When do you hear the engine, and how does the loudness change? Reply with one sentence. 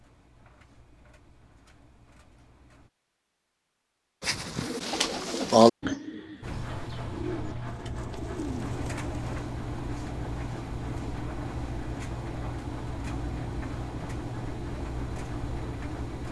You can hear the engine briefly from 0.0 to 2.9 s; and from 6.4 to 16.2 s, at a steady volume.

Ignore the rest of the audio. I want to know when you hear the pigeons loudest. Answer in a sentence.
The volume of the pigeons peaks at 6 seconds.